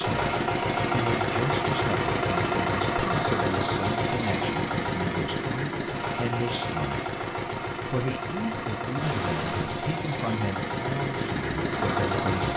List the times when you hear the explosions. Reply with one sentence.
You can hear the explosions from 9.0 to 9.8 s.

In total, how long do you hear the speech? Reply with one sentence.
You can hear the speech for 12 seconds altogether.